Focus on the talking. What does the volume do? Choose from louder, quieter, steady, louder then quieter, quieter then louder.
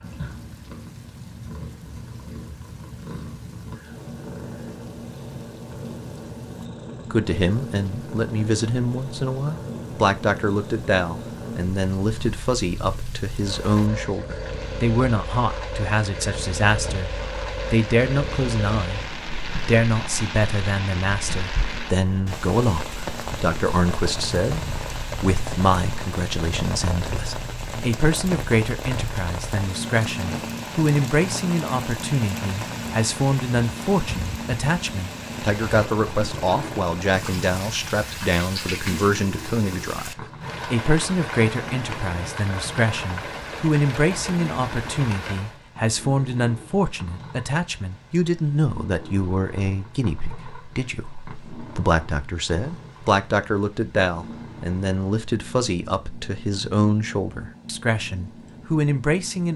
steady.